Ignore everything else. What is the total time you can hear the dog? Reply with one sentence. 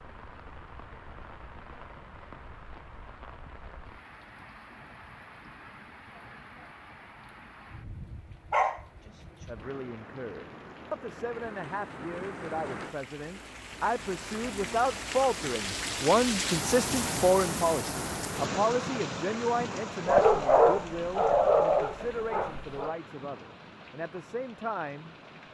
The dog can be heard for 4 seconds in total.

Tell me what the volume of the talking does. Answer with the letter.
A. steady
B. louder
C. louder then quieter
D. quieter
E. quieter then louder
C.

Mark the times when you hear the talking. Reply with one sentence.
You can hear the talking from 9.4 to 25.4 s.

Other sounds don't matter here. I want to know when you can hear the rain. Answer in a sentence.
You can hear the rain from 0.0 to 25.4 s.